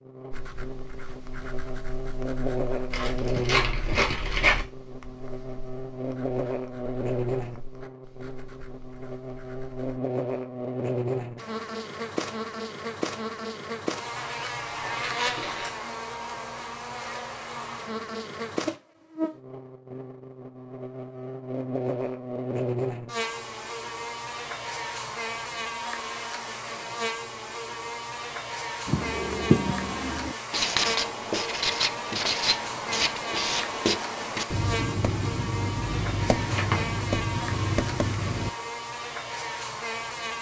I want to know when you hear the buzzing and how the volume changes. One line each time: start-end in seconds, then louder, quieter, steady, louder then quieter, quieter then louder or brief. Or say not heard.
0.0-40.3 steady.